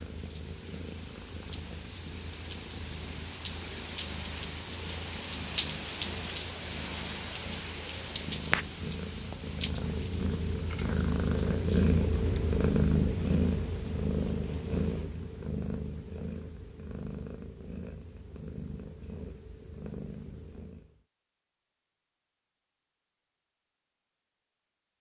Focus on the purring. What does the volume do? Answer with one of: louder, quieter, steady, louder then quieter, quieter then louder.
louder then quieter.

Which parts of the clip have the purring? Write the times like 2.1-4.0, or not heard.
0.0-21.0.